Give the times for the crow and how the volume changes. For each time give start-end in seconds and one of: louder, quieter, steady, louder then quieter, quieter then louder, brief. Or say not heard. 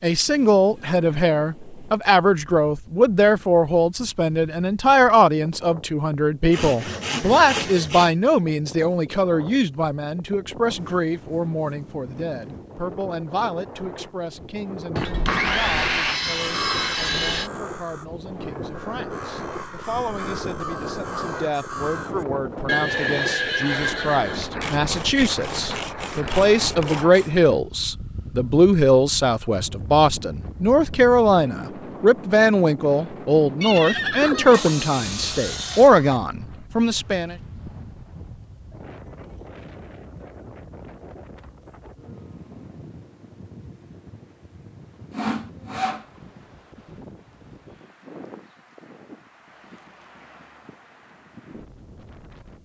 16.2-22.4 quieter then louder.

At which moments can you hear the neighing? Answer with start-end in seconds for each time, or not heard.
22.6-24.5, 33.6-34.8.